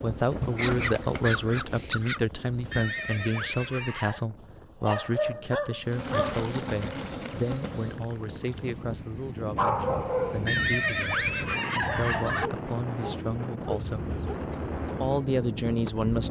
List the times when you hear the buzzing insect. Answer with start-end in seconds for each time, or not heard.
0.0-3.1, 5.8-8.9, 13.8-16.2.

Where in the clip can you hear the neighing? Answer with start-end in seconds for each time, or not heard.
2.7-4.2, 10.4-12.5.